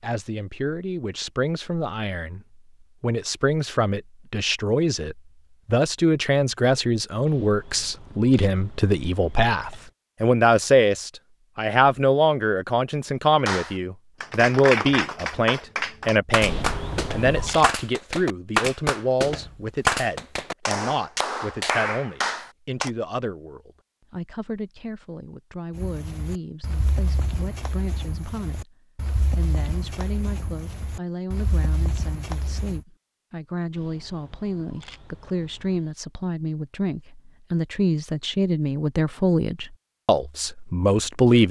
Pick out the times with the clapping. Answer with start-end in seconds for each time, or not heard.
13.4-22.9.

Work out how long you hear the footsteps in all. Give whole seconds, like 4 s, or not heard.
7 s.